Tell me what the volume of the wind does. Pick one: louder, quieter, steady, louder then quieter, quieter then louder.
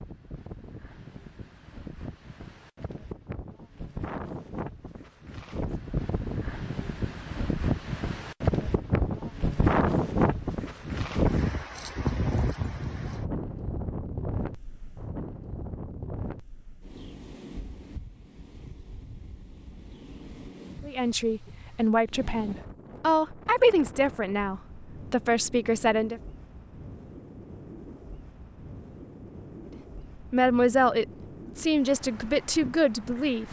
louder then quieter.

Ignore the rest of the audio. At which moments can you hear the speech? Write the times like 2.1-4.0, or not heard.
20.9-26.2, 30.2-33.4.